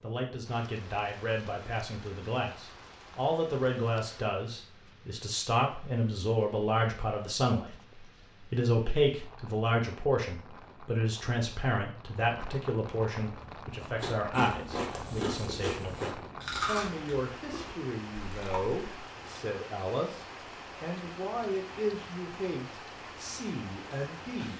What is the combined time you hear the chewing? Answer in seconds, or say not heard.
5 s.